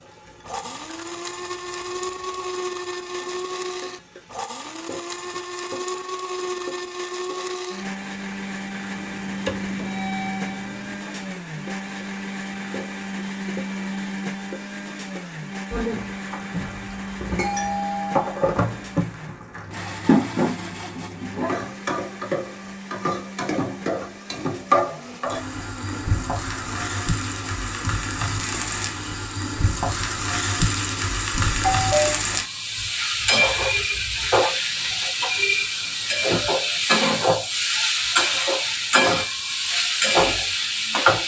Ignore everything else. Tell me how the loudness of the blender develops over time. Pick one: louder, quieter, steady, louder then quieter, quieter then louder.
quieter.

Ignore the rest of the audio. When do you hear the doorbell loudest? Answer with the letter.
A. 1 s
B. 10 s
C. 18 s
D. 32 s
D.